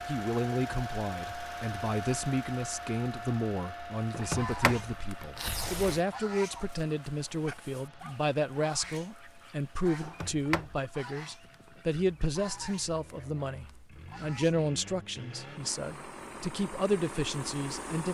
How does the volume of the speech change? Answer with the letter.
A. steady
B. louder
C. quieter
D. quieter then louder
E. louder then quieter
A.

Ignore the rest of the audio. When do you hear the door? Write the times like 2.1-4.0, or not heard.
4.1-6.0, 10.0-10.8.